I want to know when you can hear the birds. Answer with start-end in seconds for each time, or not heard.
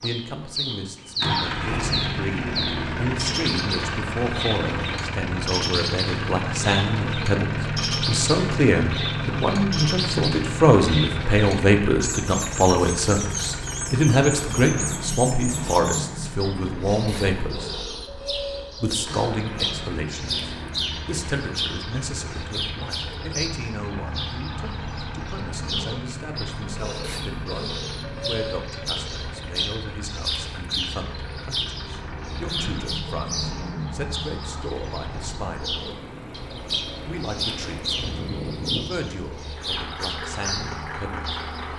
0.0-41.7.